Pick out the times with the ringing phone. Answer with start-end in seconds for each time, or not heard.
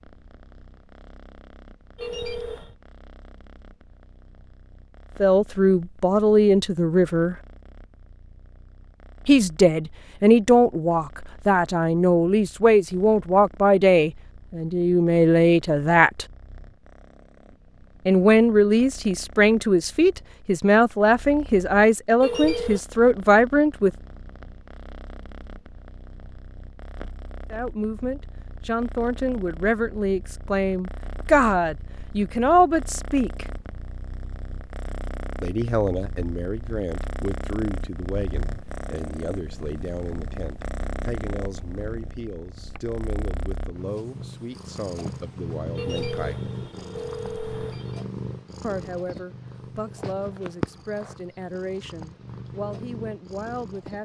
1.9-2.8, 22.2-22.8, 45.8-48.0.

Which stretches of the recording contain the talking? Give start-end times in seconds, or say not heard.
5.2-7.3, 9.2-16.2, 18.1-23.9, 27.5-33.5, 35.4-46.5, 48.6-54.0.